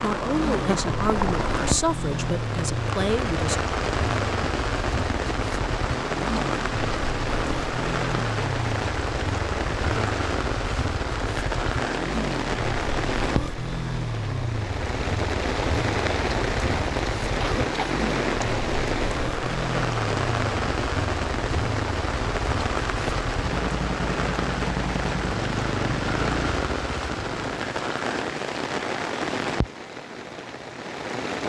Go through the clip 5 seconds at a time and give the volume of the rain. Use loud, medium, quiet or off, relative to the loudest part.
loud, loud, loud, loud, loud, loud, medium.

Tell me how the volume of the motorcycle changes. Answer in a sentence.
The loudness of the motorcycle stays about the same.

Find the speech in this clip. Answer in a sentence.
The speech can be heard from 0.0 to 3.6 s.